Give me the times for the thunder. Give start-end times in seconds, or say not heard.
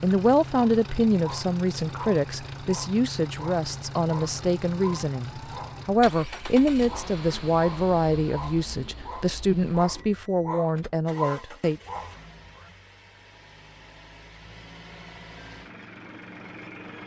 not heard.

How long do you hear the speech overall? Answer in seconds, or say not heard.
12 s.